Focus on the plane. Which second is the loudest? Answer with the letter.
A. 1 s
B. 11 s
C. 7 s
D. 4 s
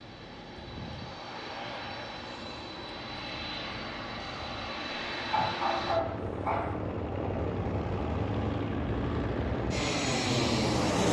B.